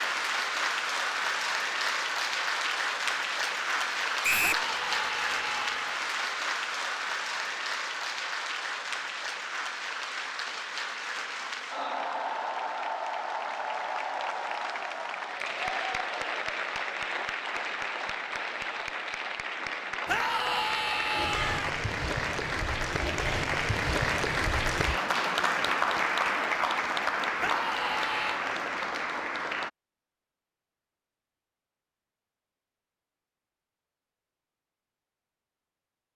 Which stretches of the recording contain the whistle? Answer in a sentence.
The whistle can be heard from 4.2 to 4.7 s.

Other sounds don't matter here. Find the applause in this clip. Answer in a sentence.
The applause can be heard from 0.0 to 29.7 s.